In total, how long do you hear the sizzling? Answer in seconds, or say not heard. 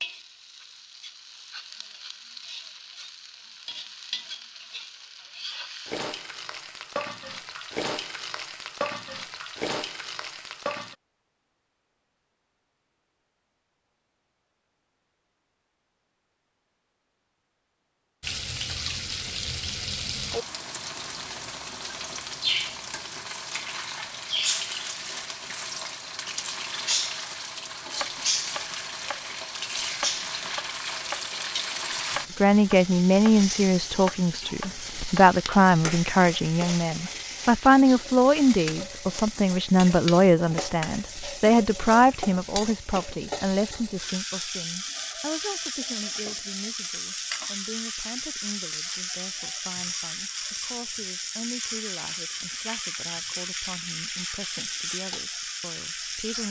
49 s.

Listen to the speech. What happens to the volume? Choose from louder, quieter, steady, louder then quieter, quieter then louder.
quieter.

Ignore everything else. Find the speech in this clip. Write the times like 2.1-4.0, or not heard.
32.4-56.4.